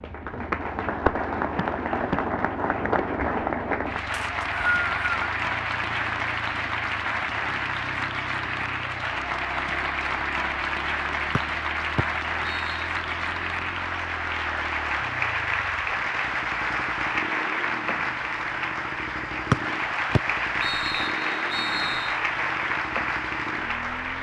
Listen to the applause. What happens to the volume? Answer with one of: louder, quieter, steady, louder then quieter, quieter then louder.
steady.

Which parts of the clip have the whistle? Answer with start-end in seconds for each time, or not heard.
4.1-5.2, 11.3-12.8, 19.5-22.1.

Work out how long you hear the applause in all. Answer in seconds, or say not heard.
24 s.